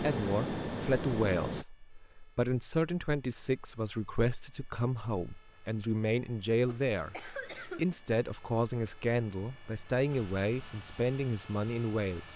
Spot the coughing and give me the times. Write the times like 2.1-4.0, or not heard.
6.7-7.8.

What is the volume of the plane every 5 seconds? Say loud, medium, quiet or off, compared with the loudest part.
loud, off, quiet.